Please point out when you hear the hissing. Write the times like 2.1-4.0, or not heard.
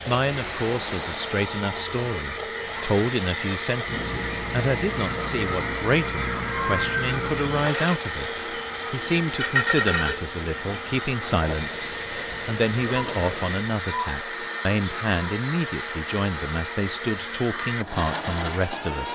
0.1-13.6.